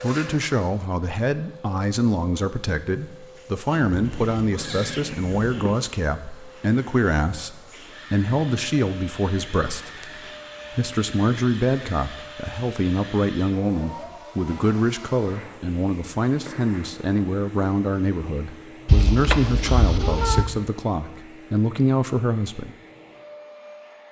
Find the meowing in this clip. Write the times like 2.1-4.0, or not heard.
4.0-5.8, 9.7-10.3, 18.9-20.5.